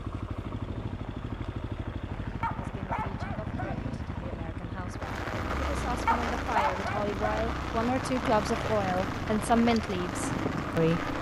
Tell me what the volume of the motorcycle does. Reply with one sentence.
The loudness of the motorcycle stays about the same.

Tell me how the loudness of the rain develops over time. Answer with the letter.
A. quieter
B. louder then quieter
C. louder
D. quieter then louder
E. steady
C.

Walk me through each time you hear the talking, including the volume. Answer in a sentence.
You can hear the talking from 2.5 to 11.1 s, getting louder.